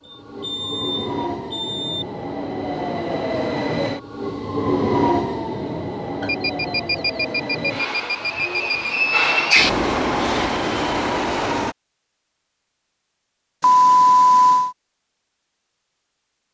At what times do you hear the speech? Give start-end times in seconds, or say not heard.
not heard.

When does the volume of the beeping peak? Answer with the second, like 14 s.
14 s.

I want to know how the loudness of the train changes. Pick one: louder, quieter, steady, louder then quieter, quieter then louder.
louder.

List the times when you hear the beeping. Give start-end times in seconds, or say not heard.
0.1-2.0, 6.2-8.9, 13.6-14.8.